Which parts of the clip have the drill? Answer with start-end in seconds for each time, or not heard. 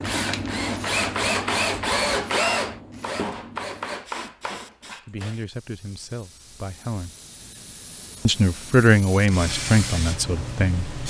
0.0-5.3.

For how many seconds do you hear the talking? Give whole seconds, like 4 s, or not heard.
5 s.